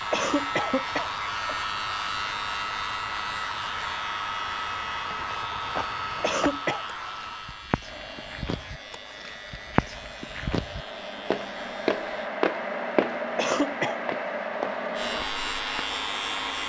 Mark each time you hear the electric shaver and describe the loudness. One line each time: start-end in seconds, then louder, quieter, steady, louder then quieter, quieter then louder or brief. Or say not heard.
0.0-12.3 quieter
14.9-16.6 brief.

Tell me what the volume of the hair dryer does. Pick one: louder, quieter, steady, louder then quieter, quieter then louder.
quieter then louder.